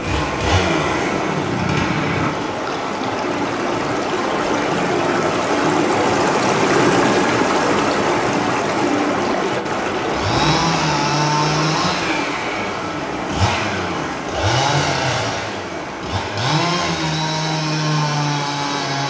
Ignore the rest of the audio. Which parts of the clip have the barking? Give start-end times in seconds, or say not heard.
not heard.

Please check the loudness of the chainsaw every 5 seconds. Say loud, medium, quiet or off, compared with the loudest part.
loud, off, loud, loud.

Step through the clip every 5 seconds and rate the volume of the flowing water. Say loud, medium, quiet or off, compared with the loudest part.
medium, loud, medium, quiet.